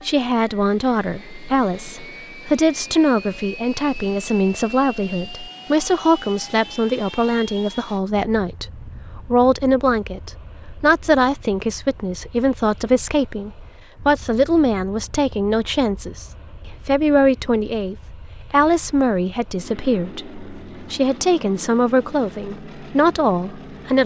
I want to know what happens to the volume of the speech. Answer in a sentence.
The loudness of the speech stays about the same.